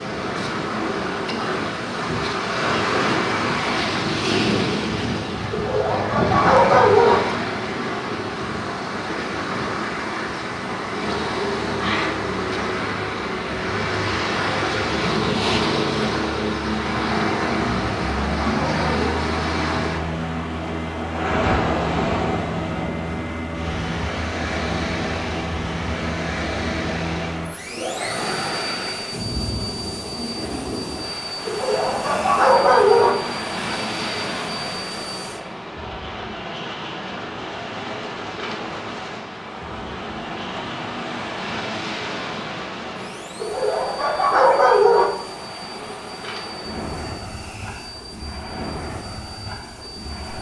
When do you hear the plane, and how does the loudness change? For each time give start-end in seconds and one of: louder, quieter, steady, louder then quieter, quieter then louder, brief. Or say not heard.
10.8-50.3 quieter.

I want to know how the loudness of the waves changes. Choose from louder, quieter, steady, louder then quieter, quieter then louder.
quieter.